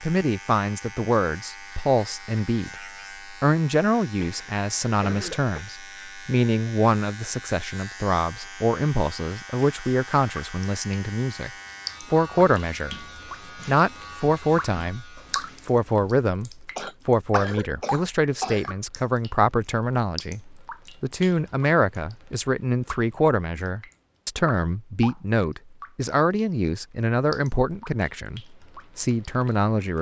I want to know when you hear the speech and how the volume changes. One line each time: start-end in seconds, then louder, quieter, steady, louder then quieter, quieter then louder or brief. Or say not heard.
0.0-2.7 brief
3.3-12.9 steady
13.7-29.9 steady.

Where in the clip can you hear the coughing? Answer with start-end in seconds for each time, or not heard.
4.2-5.7, 16.8-18.8.